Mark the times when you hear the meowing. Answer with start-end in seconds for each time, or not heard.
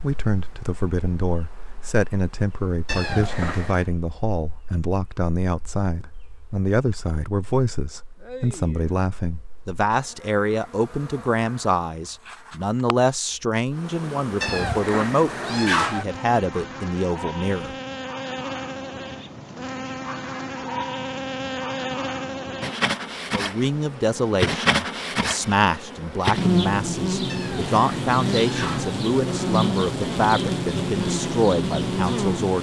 2.9-3.9, 14.4-16.1, 27.2-28.9.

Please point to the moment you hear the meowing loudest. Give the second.
16 s.